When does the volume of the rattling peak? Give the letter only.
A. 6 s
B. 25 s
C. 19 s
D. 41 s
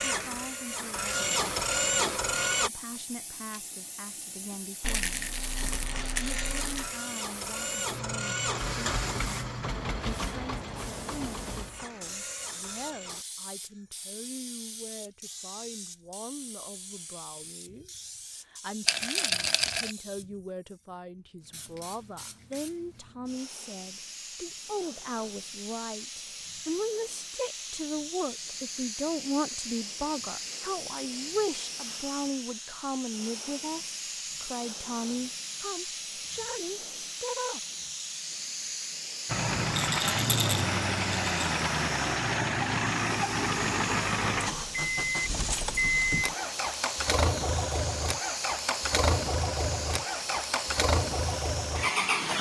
C.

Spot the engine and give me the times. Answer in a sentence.
The engine can be heard from 0.0 to 2.7 s, from 5.5 to 13.2 s and from 39.2 to 52.3 s.